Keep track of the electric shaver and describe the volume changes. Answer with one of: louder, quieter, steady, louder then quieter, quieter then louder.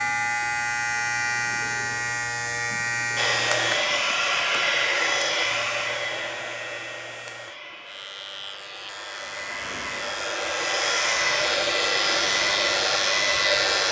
quieter then louder.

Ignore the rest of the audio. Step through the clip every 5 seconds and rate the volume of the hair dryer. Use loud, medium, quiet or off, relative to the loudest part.
loud, medium, loud.